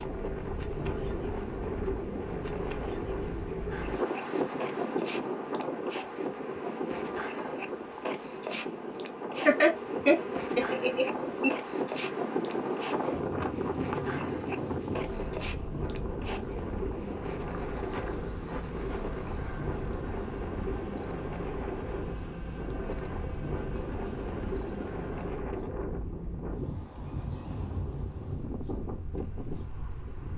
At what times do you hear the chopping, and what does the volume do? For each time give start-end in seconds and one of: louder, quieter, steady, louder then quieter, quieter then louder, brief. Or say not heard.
not heard.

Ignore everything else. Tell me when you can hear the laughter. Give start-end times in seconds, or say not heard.
9.4-11.6.